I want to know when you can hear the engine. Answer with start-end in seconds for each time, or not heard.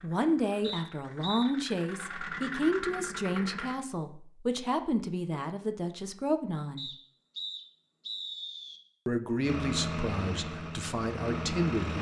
0.0-3.8, 9.4-11.9.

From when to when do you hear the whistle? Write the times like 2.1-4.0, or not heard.
0.6-1.5, 6.8-8.8.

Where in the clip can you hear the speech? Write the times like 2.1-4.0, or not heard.
0.0-6.8, 9.1-11.9.